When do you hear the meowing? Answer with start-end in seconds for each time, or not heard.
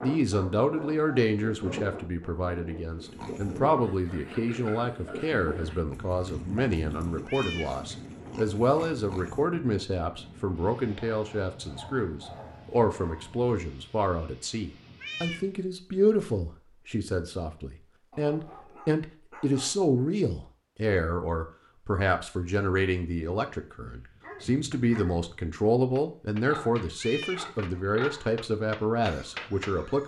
7.2-7.7, 15.0-15.4, 27.0-27.4.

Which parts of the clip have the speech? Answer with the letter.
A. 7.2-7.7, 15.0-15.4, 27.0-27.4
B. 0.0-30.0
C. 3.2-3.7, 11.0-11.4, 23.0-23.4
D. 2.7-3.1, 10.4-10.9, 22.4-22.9
B.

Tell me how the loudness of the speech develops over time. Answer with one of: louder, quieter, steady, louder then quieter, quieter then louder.
steady.